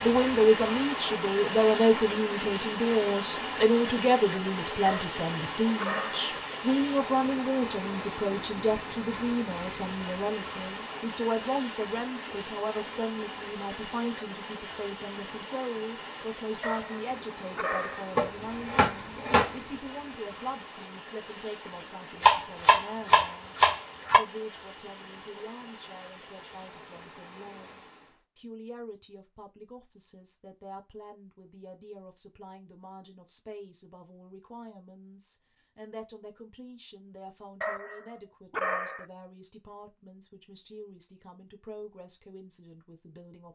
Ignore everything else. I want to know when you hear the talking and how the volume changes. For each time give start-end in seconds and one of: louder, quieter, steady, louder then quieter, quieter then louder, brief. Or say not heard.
0.0-43.5 quieter.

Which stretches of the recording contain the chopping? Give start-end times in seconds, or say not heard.
18.1-19.6, 22.2-24.2.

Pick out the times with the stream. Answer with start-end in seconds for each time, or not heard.
0.0-28.2.